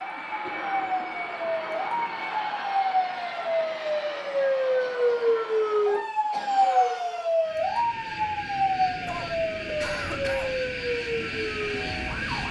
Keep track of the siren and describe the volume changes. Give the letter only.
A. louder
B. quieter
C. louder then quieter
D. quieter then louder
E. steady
C.